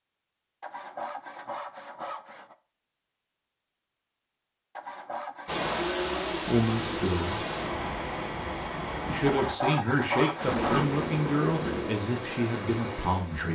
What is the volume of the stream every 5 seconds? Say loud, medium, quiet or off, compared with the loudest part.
off, loud, medium.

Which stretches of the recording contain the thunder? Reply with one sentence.
The thunder can be heard from 10.4 to 11.9 s.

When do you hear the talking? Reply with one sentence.
The talking can be heard from 6.5 to 7.5 s and from 9.1 to 13.5 s.